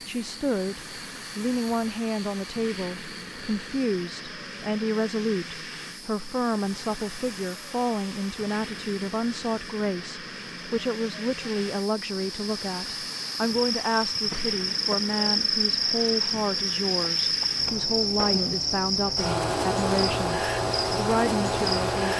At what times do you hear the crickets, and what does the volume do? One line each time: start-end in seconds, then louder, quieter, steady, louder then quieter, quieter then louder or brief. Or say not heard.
0.0-22.1 louder.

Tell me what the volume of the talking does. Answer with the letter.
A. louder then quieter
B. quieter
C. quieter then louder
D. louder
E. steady
E.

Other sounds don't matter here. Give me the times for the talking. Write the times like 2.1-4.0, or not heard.
0.1-22.1.